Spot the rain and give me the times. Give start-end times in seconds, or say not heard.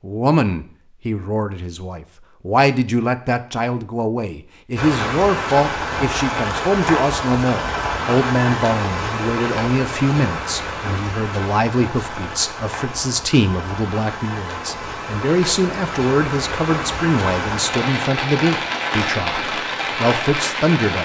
4.8-20.9.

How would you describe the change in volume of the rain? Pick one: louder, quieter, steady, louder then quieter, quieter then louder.
quieter then louder.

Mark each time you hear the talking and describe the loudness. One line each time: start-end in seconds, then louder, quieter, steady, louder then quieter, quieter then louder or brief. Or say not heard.
0.0-20.9 steady.